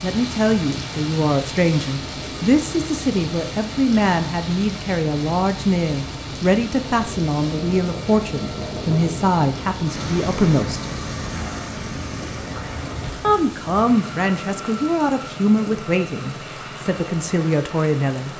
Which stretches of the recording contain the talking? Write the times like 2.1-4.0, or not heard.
0.0-10.8, 13.2-18.3.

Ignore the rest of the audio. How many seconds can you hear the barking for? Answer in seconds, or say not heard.
not heard.